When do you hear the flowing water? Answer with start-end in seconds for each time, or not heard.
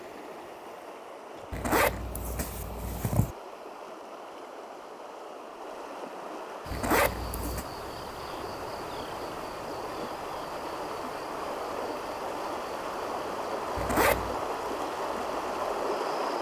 0.0-16.3.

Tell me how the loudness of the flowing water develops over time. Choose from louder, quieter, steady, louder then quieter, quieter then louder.
louder.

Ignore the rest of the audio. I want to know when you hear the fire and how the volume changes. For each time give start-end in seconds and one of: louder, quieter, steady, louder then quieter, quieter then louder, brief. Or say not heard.
not heard.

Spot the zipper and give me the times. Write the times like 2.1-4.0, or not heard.
1.5-3.4, 6.7-7.7, 13.8-14.3.